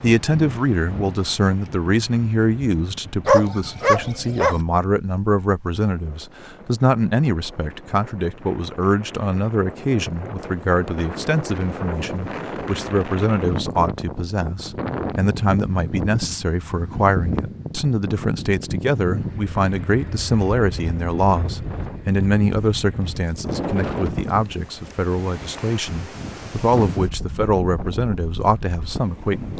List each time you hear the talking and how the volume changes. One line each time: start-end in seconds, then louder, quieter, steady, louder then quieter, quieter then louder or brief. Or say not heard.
0.0-29.5 steady.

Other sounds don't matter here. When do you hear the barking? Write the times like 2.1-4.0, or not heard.
3.2-4.6.